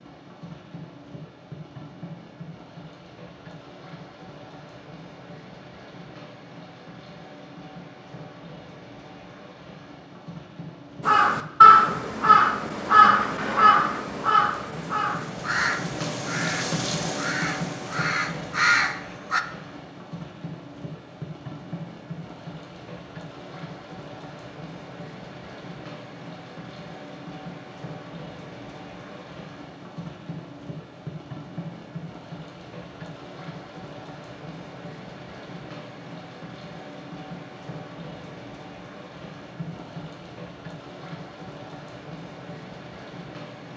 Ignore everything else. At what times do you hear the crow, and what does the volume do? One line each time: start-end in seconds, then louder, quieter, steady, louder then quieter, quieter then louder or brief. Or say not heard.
11.1-19.4 quieter then louder.